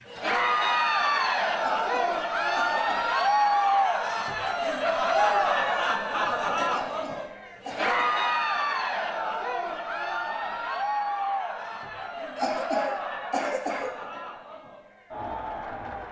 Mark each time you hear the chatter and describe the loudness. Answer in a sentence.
You can hear the chatter from 0.1 to 16.0 s, getting quieter.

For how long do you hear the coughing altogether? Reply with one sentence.
You can hear the coughing for 5 seconds altogether.